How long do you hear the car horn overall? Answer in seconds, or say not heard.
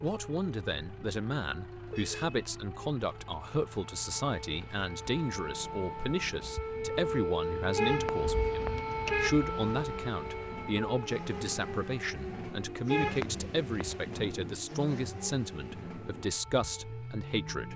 3 s.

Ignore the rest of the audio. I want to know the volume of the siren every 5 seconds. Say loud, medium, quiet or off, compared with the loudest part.
quiet, loud, medium, quiet.